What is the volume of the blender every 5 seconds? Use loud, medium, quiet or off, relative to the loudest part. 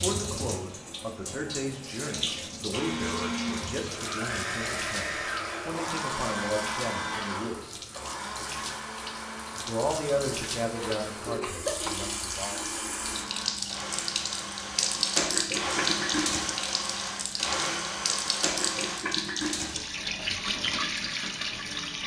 loud, loud, medium, loud, off.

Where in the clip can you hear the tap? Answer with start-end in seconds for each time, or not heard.
0.0-22.0.